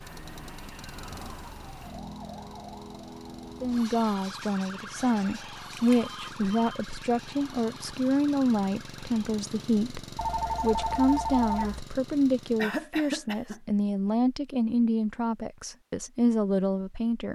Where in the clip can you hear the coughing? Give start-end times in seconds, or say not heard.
12.6-13.6.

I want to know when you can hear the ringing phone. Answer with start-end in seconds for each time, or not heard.
5.0-6.8, 10.2-11.8.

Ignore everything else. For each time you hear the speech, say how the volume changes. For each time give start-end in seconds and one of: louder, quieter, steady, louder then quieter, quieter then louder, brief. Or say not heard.
3.6-17.3 steady.